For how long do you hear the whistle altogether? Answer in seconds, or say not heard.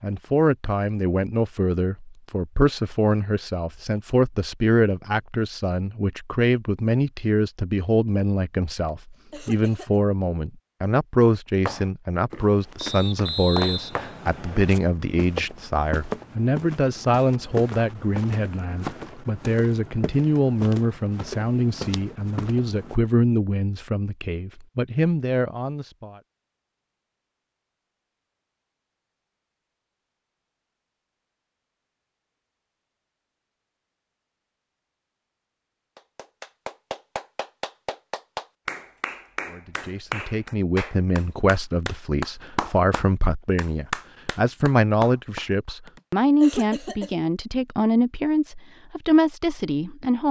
2 s.